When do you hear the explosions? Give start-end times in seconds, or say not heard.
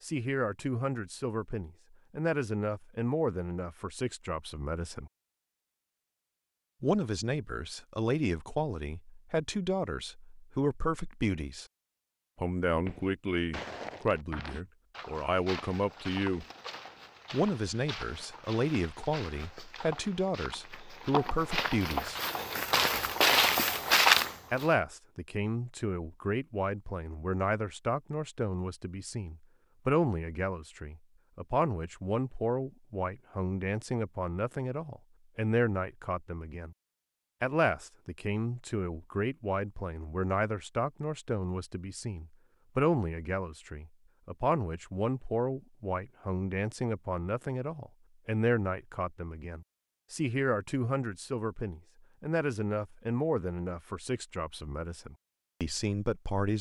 not heard.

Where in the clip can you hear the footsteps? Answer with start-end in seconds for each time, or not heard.
12.8-24.7.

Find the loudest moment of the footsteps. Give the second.
24 s.